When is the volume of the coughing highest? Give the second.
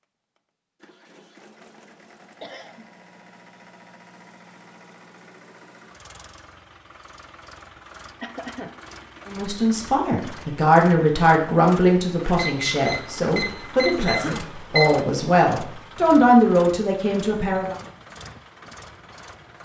14 s.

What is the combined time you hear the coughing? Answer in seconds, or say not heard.
2 s.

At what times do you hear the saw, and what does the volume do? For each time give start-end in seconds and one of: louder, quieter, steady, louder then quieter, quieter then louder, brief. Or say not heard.
not heard.